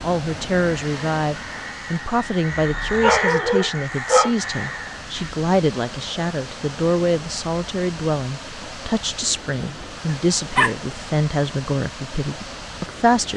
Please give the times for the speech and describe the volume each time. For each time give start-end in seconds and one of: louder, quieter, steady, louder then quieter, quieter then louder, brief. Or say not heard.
0.0-13.3 steady.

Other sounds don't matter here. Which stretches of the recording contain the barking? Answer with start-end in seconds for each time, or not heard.
2.5-4.3, 10.1-10.8.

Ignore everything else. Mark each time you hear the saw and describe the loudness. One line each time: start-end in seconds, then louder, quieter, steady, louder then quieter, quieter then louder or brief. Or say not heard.
not heard.